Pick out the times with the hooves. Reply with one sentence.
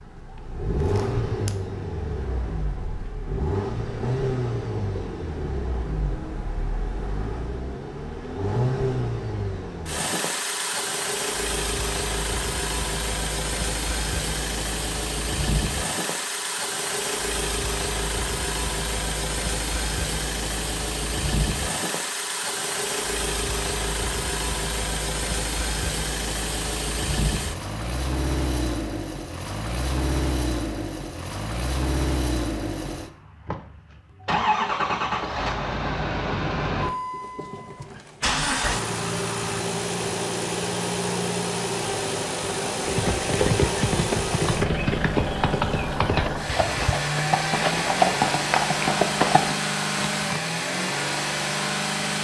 The hooves can be heard from 42.8 to 50.4 s.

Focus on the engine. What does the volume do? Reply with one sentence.
The volume of the engine stays about the same.